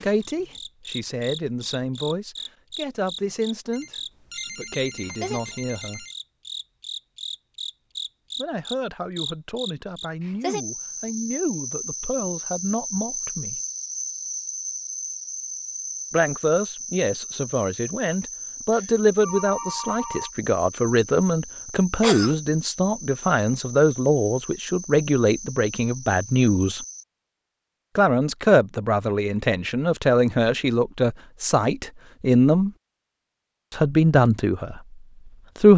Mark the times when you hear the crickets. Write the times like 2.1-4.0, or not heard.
0.0-27.1.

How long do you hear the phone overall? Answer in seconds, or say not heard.
4 s.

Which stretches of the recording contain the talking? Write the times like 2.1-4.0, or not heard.
0.0-4.0, 4.5-6.0, 8.3-13.6, 16.1-26.9, 27.9-32.7, 33.7-35.7.